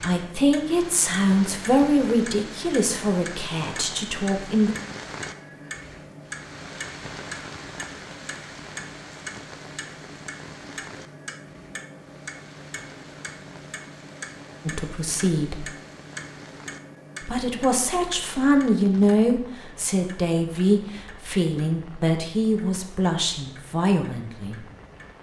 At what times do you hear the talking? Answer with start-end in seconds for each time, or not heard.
0.0-4.8, 14.7-15.7, 17.2-24.6.